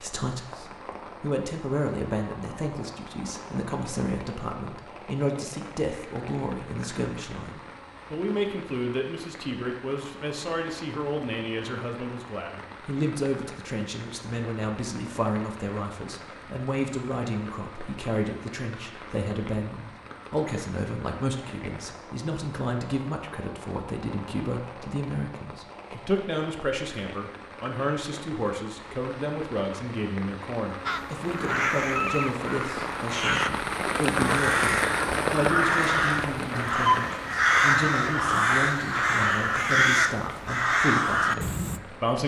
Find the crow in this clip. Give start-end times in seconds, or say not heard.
30.9-41.8.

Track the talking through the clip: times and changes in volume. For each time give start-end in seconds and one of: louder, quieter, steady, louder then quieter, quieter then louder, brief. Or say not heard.
0.0-42.2 steady.